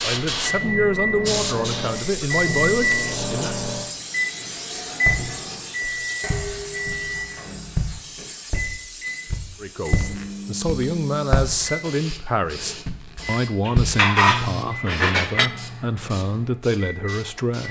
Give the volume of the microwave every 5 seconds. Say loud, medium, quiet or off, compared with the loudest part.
loud, loud, medium, medium.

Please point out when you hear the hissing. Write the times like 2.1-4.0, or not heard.
0.0-17.6.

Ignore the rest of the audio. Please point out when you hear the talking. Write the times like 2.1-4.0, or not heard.
0.0-3.5, 9.6-17.6.